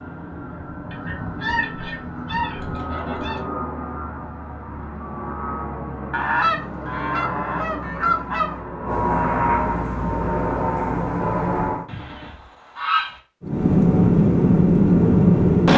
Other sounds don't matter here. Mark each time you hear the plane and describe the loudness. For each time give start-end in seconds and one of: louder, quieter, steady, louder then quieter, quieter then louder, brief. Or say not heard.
0.0-11.8 louder
13.4-15.7 brief.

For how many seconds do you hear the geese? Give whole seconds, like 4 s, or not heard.
6 s.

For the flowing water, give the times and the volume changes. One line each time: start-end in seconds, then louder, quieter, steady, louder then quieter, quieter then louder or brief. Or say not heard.
not heard.